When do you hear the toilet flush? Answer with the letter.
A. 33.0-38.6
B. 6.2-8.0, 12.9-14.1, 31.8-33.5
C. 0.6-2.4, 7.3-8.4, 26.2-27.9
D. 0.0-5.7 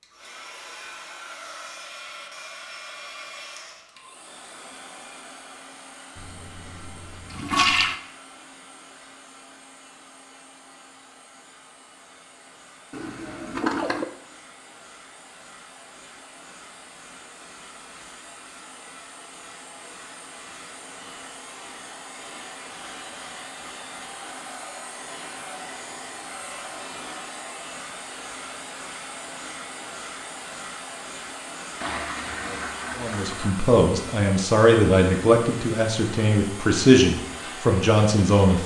B.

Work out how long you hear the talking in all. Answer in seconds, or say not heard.
6 s.